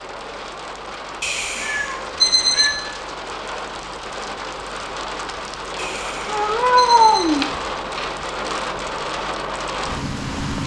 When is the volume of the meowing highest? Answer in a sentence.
The loudest moment of the meowing is at 7 seconds.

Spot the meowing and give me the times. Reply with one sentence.
You can hear the meowing from 1.6 to 2.8 s and from 6.2 to 8.1 s.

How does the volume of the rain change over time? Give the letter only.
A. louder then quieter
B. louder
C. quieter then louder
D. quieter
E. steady
B.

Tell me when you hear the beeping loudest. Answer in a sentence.
The volume of the beeping peaks at 2 seconds.